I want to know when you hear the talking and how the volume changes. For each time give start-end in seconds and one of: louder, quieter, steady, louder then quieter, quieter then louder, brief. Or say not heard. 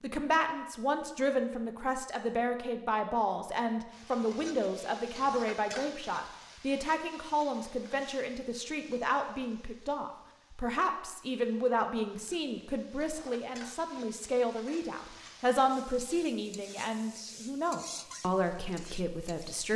0.0-19.7 steady.